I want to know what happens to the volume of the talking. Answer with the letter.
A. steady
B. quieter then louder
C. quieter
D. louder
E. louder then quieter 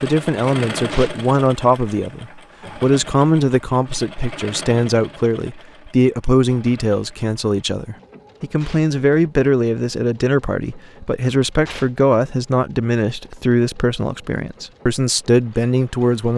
A.